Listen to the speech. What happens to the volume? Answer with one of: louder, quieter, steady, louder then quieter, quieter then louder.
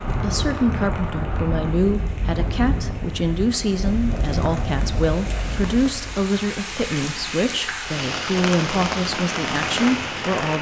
steady.